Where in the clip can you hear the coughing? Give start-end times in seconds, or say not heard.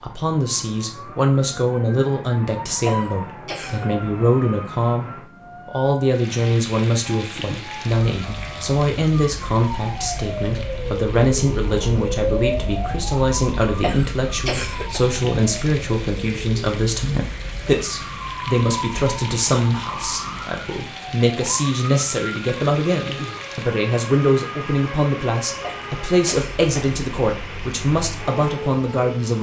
2.8-3.9, 13.8-15.0, 25.6-27.0.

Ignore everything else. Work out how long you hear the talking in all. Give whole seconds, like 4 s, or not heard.
29 s.